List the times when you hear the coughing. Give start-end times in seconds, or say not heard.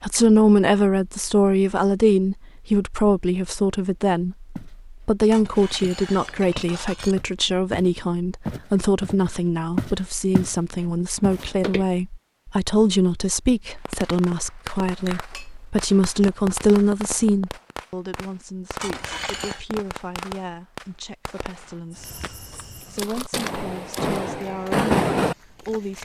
not heard.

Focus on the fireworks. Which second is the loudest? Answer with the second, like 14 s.
25 s.